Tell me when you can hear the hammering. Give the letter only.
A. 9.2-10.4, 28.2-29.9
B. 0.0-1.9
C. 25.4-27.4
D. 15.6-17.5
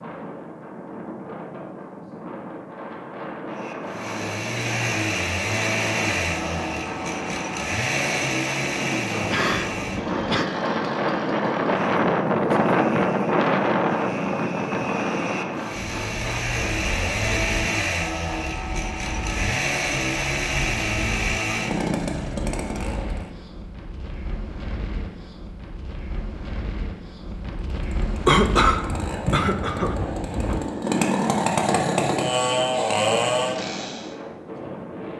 D.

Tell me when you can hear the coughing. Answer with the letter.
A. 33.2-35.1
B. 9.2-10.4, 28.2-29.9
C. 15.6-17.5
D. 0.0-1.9
B.